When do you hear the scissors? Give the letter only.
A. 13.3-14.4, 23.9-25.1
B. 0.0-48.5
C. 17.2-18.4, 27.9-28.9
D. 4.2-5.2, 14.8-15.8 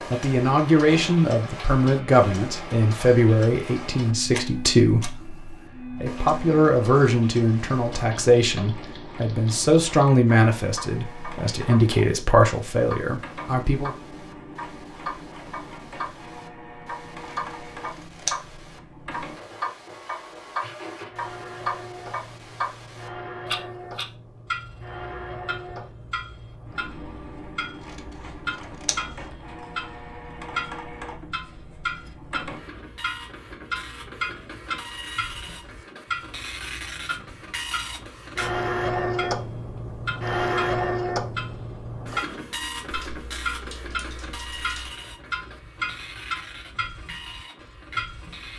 C.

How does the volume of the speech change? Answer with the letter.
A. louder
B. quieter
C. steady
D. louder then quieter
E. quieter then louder
C.